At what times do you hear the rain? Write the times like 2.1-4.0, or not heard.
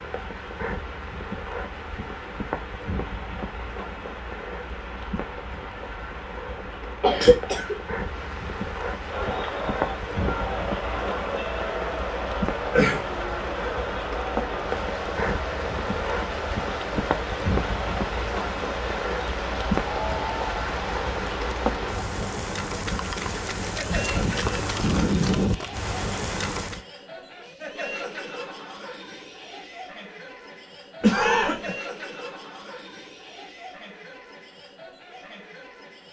0.0-26.8.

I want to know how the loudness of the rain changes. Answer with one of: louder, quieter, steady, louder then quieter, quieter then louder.
louder.